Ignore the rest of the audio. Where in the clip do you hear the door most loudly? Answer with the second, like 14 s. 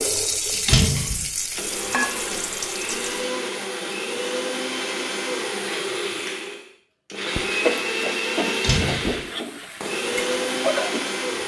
1 s.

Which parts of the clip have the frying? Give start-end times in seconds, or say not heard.
0.0-3.3, 7.3-11.4.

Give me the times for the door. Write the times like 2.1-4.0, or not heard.
0.7-1.2, 8.6-9.2.